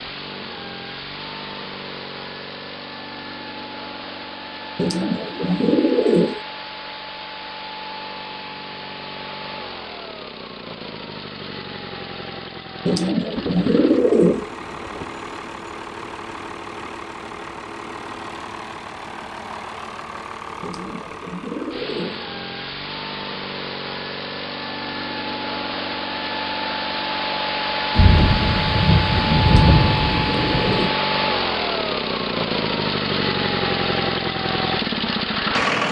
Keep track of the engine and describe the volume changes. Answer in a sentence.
The loudness of the engine goes up.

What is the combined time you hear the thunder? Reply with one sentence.
You can hear the thunder for 5 seconds altogether.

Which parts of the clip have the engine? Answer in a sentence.
The engine can be heard from 0.0 to 35.8 s.